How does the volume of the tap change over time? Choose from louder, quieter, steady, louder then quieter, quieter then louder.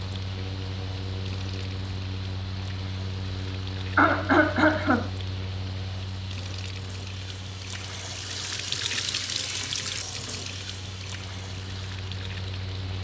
louder then quieter.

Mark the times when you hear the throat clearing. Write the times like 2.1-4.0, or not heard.
4.0-5.1.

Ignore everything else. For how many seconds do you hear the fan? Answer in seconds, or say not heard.
13 s.